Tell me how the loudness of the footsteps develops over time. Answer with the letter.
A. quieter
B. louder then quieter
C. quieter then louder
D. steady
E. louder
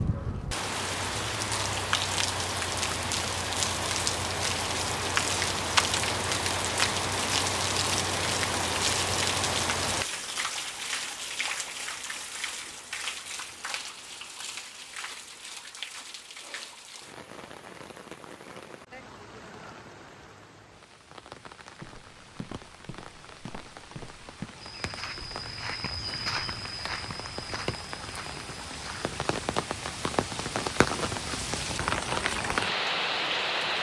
B.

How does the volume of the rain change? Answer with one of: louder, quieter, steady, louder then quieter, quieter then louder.
quieter then louder.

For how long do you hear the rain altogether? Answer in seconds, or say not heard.
34 s.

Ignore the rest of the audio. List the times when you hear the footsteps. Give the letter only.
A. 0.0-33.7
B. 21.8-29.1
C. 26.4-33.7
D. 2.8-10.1
B.